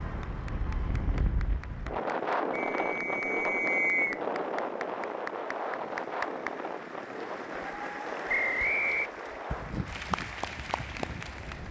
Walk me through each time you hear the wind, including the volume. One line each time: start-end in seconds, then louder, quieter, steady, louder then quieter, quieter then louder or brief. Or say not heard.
0.0-11.6 quieter.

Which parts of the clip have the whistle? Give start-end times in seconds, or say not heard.
2.5-4.2, 8.2-9.1.